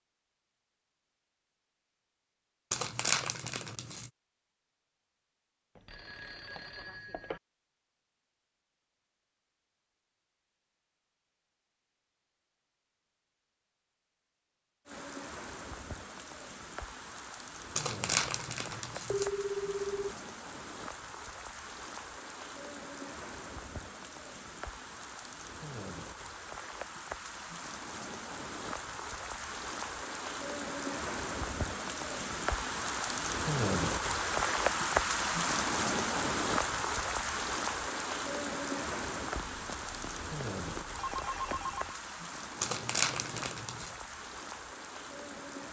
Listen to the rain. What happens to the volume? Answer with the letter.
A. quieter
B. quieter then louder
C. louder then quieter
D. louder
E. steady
C.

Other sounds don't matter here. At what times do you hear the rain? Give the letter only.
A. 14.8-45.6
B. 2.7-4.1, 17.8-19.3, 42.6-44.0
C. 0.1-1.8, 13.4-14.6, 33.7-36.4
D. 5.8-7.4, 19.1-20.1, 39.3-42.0
A.